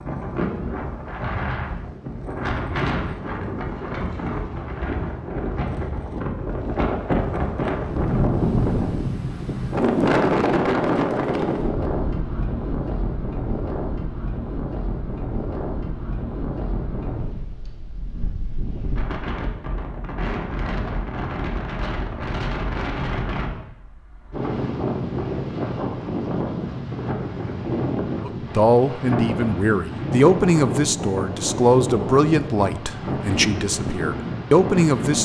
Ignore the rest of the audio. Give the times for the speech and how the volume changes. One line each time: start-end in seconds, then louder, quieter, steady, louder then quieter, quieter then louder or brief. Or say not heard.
28.2-35.1 steady.